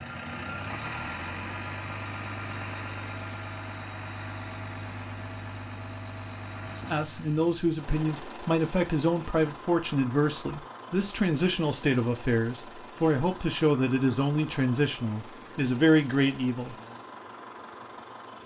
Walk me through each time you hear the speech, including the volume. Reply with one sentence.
The speech can be heard from 6.9 to 16.8 s, at a steady volume.